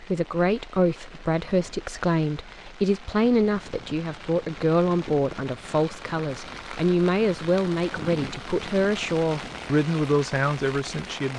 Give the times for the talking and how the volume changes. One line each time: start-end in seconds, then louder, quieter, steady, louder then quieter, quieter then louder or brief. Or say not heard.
0.0-11.3 steady.